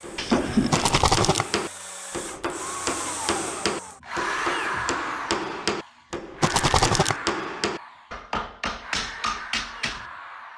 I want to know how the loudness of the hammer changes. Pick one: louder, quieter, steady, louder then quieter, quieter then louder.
steady.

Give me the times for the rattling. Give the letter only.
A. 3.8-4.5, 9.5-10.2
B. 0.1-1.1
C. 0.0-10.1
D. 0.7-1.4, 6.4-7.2
D.